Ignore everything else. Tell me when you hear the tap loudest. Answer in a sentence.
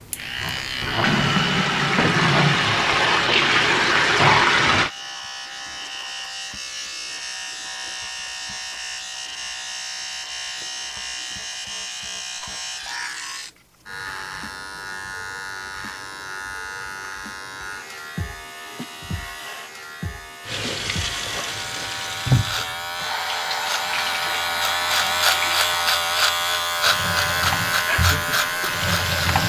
The volume of the tap peaks at 4 seconds.